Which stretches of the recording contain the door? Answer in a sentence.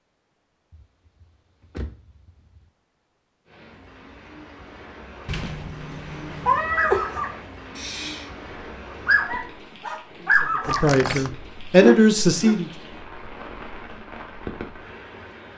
The door can be heard from 0.7 to 2.6 s, from 5.2 to 6.7 s and from 10.6 to 11.3 s.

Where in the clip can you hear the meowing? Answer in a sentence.
The meowing can be heard from 6.5 to 7.2 s.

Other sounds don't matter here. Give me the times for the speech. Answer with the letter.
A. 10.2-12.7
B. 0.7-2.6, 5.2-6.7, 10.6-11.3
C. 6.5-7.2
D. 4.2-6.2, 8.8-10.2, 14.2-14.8
A.